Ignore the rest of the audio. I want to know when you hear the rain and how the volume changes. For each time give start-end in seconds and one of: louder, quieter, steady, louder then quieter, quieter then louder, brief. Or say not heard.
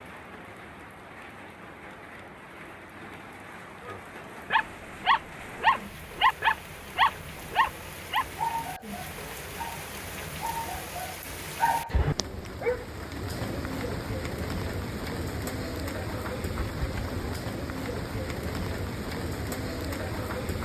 0.0-20.6 louder.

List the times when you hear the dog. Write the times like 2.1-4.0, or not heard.
3.9-12.8.